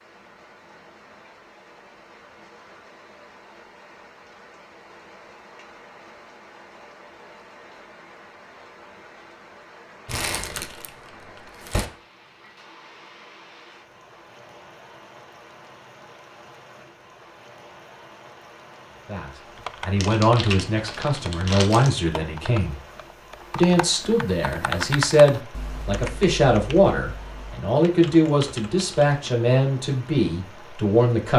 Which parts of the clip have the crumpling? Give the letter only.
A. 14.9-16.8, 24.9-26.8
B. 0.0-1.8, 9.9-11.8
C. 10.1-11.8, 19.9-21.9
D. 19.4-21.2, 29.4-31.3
C.